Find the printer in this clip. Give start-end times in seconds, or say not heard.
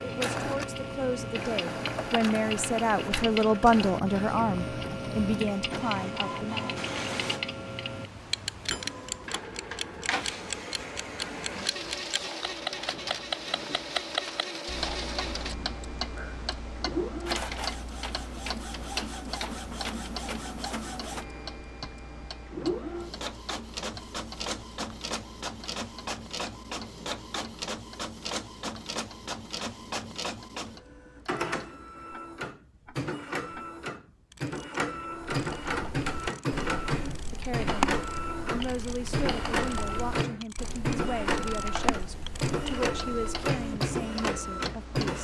0.0-45.1.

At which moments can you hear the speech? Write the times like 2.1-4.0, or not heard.
0.0-6.7, 37.3-45.1.